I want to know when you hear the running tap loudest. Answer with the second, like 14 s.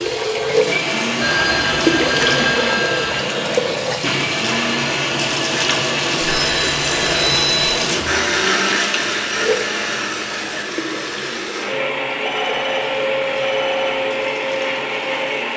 2 s.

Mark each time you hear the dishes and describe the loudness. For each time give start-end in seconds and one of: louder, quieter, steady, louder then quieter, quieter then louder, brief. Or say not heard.
not heard.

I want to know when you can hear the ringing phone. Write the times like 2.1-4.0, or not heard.
1.2-3.2, 6.2-7.8, 12.2-14.1.